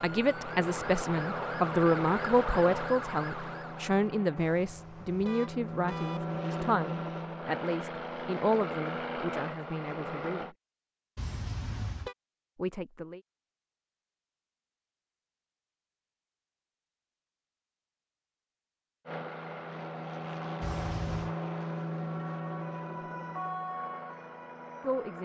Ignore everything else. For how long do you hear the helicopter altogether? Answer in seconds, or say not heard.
17 s.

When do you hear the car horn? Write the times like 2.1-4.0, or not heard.
4.3-6.2, 11.2-12.2, 20.6-21.4.